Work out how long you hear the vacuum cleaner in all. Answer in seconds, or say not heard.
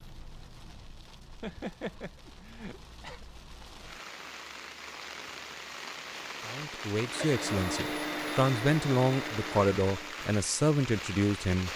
3 s.